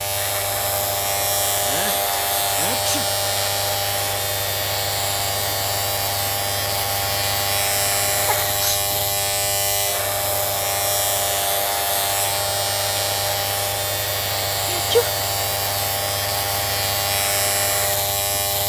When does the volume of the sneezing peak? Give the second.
15 s.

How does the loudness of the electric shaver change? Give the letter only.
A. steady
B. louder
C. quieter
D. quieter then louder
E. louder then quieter
A.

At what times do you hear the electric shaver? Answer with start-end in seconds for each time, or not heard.
0.0-18.6.